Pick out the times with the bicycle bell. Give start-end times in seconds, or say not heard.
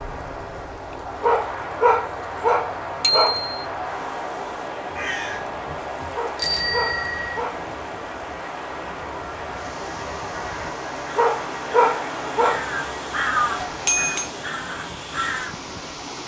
3.0-3.5, 6.3-7.4, 13.6-14.3.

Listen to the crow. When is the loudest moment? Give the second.
13 s.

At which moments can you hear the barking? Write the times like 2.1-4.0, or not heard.
1.2-3.5, 6.2-7.7, 11.2-12.7.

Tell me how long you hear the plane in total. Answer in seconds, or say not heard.
16 s.